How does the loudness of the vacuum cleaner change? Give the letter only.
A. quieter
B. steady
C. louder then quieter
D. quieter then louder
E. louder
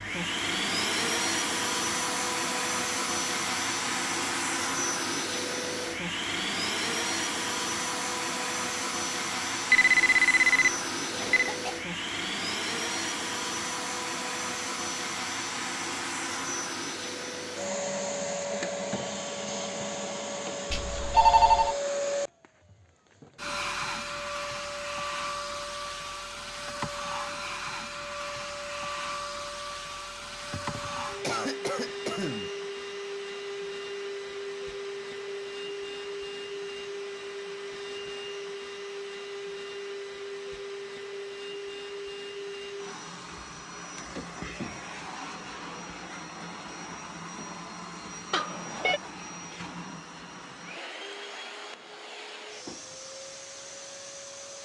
A.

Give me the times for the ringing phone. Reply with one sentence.
The ringing phone can be heard from 9.7 to 11.5 s, from 20.7 to 21.8 s and from 48.3 to 49.0 s.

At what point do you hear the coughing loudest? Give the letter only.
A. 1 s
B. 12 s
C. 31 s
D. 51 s
C.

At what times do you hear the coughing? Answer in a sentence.
The coughing can be heard from 11.2 to 11.8 s and from 30.5 to 32.5 s.